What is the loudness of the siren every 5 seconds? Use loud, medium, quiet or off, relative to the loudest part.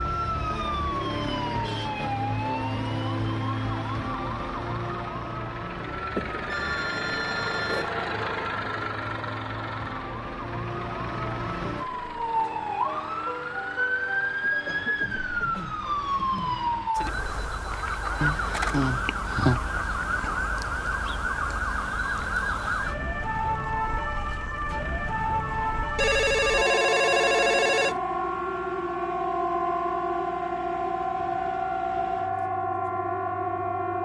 loud, medium, loud, loud, loud, loud, loud.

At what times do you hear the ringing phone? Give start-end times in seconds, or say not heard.
6.2-7.9, 18.2-19.6, 25.9-28.0.